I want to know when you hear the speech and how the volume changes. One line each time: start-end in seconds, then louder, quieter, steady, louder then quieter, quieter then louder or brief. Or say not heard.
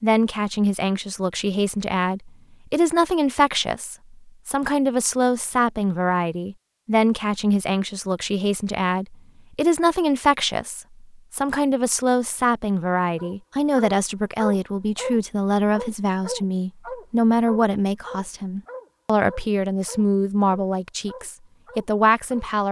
0.0-22.6 steady.